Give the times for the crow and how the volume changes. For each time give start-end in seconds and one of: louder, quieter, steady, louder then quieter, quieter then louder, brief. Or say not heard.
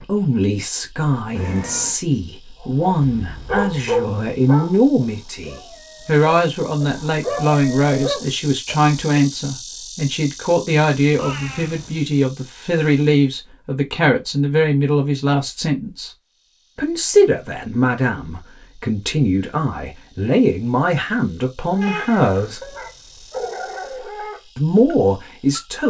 not heard.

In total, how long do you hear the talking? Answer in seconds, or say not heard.
23 s.